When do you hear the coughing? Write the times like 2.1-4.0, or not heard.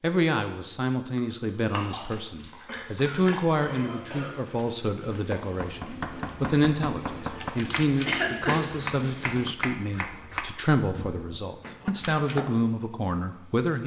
2.6-4.4, 8.1-8.6.